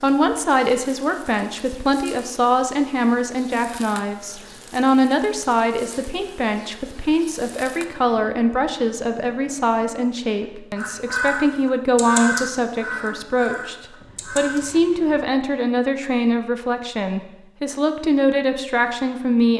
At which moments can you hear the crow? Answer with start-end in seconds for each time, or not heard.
10.8-14.6.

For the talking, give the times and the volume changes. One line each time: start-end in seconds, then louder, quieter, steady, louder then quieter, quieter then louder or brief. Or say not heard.
0.0-19.5 steady.